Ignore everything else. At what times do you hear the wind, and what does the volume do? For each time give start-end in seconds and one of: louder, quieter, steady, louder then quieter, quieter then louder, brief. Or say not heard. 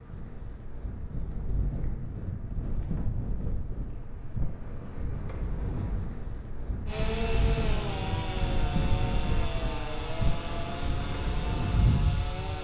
0.0-12.5 louder.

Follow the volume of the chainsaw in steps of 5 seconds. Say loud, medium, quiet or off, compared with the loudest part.
off, loud, loud.